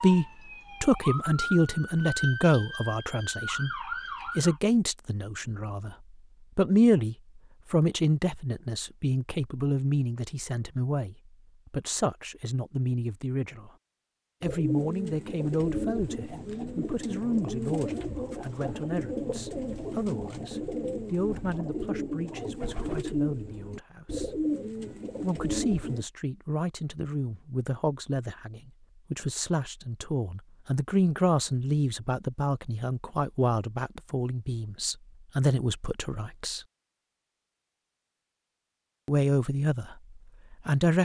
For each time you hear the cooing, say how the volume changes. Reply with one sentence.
The cooing can be heard from 14.4 to 26.1 s, at a steady volume.